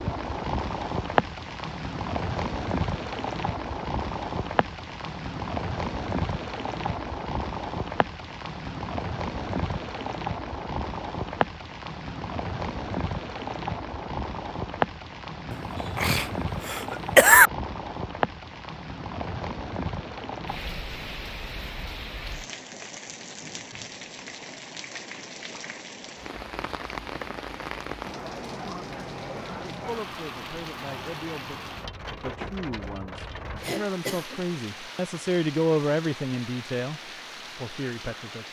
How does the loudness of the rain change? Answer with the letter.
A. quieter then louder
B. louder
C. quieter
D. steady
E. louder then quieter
C.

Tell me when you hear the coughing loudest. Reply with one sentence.
The loudest moment of the coughing is at 17 seconds.